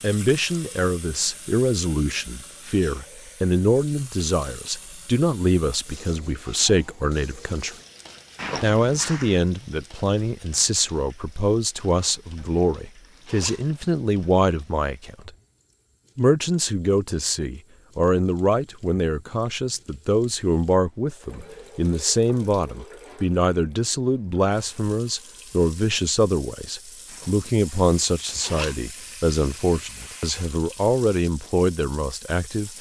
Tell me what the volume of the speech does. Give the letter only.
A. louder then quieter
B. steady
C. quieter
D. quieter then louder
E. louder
B.